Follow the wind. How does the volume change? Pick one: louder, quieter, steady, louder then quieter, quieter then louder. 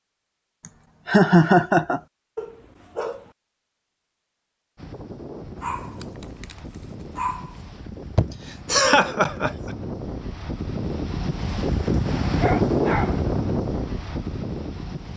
louder.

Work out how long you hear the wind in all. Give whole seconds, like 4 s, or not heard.
10 s.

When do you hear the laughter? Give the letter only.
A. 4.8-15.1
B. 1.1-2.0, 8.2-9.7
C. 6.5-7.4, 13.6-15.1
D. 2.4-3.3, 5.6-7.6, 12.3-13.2
B.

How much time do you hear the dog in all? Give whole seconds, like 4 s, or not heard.
4 s.